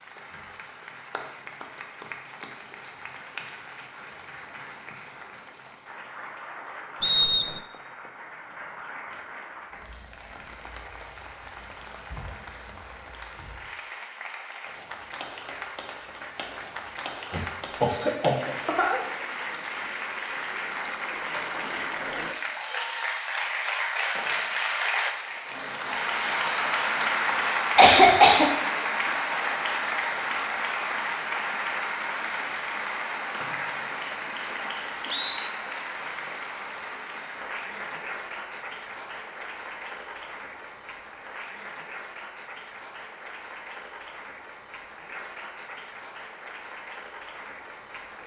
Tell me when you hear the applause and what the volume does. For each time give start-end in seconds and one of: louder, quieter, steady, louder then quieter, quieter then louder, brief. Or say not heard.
0.0-48.2 louder then quieter.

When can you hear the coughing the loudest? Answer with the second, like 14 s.
28 s.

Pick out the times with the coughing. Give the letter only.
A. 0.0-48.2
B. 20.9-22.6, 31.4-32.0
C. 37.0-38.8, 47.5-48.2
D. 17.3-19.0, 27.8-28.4
D.